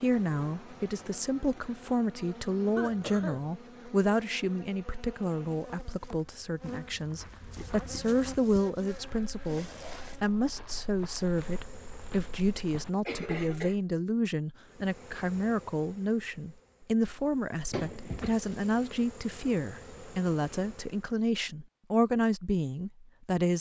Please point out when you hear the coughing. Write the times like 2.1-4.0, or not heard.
2.8-3.5, 13.1-13.8, 17.7-18.4.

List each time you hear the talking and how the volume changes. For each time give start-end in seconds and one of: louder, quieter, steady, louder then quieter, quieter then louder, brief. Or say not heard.
0.0-23.5 steady.